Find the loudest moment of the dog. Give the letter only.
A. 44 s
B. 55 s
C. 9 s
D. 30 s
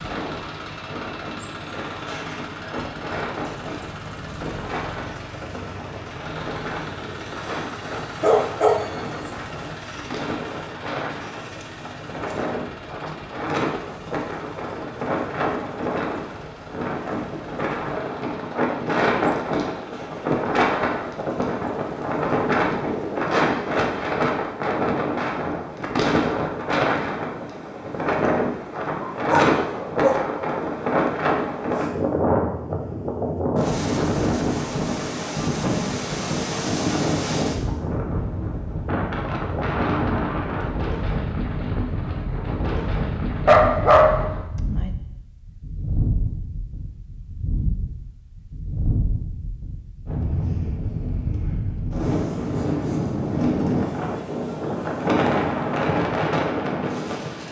A.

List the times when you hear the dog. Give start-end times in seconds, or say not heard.
8.2-8.8, 29.1-30.4, 43.5-44.9.